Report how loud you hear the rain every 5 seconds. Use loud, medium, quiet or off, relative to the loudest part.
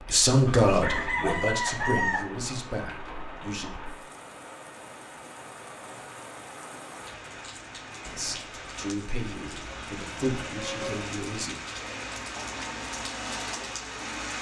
medium, medium, loud.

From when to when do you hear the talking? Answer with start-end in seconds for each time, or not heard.
0.1-3.7, 8.1-11.6.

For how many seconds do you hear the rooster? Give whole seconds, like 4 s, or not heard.
2 s.